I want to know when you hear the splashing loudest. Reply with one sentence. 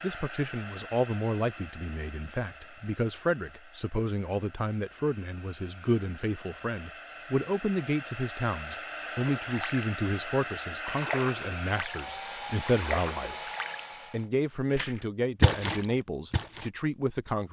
The volume of the splashing peaks at 16 seconds.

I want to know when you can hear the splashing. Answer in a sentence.
The splashing can be heard from 9.4 to 9.8 s, from 10.8 to 12.0 s, from 12.6 to 13.8 s and from 14.7 to 16.7 s.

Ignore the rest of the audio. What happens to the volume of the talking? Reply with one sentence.
The loudness of the talking stays about the same.